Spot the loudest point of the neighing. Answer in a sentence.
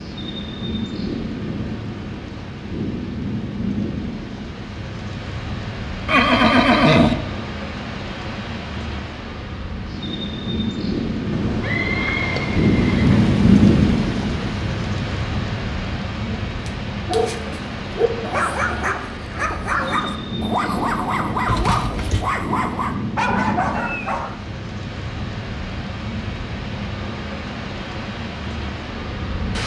The volume of the neighing peaks at 7 seconds.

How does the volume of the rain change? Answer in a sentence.
The loudness of the rain goes up, then down.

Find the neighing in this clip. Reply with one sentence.
You can hear the neighing from 6.0 to 7.2 s, from 11.3 to 13.3 s and from 21.4 to 22.2 s.